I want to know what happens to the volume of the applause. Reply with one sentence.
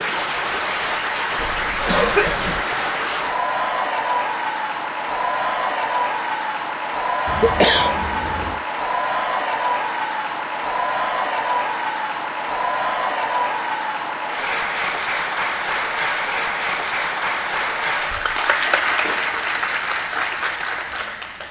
The volume of the applause stays about the same.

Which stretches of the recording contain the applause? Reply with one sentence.
The applause can be heard from 0.0 to 21.4 s.